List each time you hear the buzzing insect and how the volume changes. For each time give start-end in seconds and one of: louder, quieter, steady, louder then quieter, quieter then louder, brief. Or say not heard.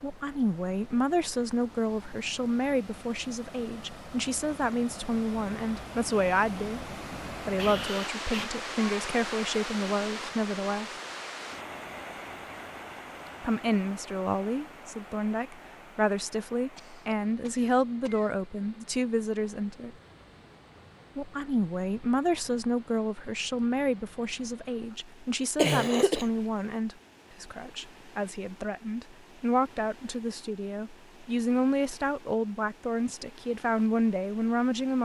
not heard.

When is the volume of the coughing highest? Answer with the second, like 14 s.
26 s.